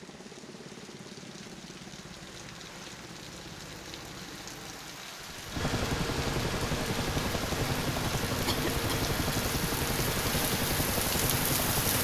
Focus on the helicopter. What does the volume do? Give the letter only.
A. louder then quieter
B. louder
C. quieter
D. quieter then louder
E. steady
B.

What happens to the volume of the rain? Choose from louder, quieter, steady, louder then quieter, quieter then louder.
louder.